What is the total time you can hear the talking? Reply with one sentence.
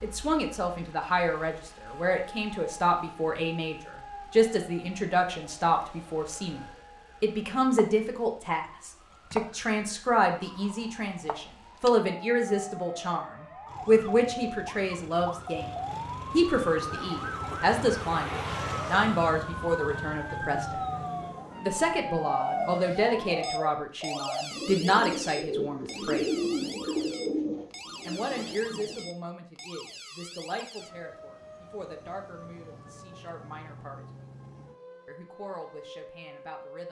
The talking can be heard for 32 seconds in total.